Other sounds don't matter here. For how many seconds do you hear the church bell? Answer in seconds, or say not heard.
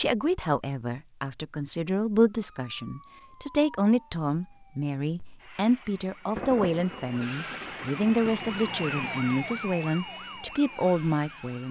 not heard.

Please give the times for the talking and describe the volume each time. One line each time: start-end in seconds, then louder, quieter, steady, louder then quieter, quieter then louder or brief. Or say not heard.
0.0-11.6 steady.